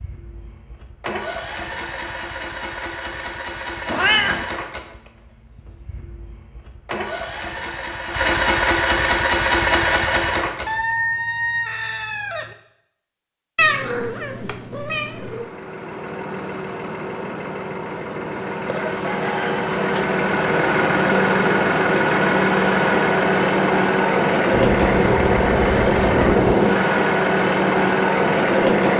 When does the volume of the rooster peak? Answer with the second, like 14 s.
11 s.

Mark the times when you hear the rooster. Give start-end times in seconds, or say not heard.
10.7-12.6, 18.6-20.0.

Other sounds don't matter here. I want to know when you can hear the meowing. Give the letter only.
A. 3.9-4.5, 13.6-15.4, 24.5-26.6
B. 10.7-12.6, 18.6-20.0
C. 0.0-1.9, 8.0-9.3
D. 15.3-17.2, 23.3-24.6
A.